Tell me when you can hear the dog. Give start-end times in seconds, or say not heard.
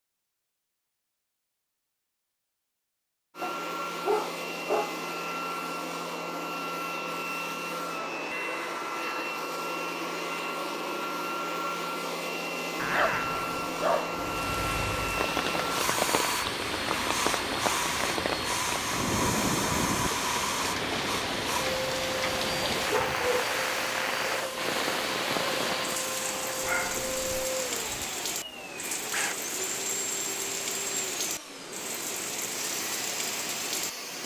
3.4-5.0, 12.8-14.2, 22.9-23.5, 26.6-27.4.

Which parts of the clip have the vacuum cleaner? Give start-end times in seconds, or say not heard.
3.4-34.2.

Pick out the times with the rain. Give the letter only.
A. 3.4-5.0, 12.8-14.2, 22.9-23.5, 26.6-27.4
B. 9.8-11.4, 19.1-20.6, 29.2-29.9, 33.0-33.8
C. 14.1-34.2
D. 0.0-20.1
C.